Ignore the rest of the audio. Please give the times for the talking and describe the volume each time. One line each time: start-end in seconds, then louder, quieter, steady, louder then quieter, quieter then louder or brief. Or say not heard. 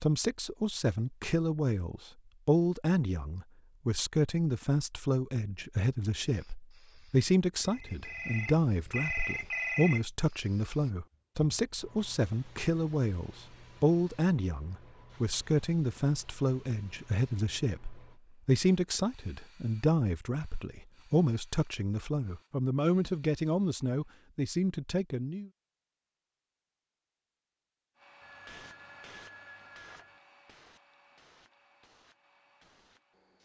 0.0-25.5 steady.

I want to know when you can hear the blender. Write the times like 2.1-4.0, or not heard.
not heard.